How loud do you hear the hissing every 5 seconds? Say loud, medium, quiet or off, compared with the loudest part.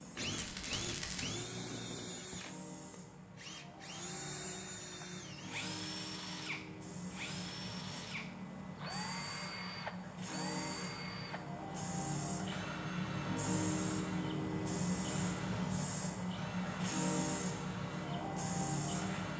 quiet, medium, loud, loud.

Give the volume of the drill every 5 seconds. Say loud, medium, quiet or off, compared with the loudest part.
loud, loud, loud, medium.